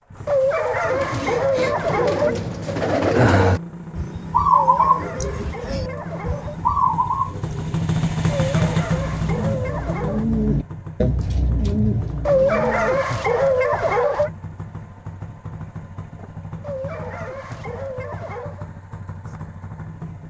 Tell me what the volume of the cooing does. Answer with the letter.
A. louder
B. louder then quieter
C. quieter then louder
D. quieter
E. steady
B.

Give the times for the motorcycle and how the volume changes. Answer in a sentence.
The motorcycle can be heard from 0.0 to 20.2 s, getting louder then quieter.